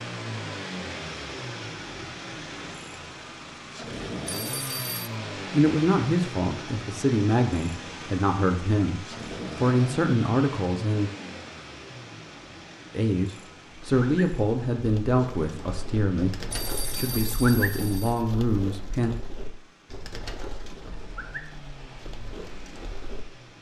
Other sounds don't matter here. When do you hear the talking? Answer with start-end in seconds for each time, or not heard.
5.5-11.1, 12.9-19.1.